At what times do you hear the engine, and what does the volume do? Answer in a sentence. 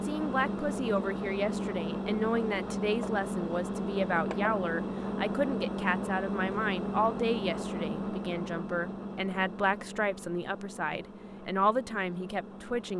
The engine can be heard from 0.0 to 12.9 s, getting quieter.